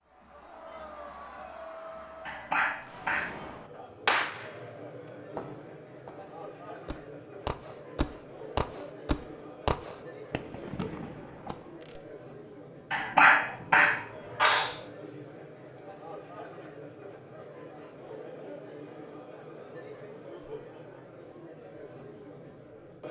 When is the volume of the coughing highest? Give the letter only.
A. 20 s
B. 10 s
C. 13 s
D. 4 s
C.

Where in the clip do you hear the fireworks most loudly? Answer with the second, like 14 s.
4 s.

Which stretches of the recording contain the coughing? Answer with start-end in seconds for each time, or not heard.
2.2-3.4, 12.9-14.8.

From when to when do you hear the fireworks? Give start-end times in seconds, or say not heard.
2.9-4.7, 5.3-12.0.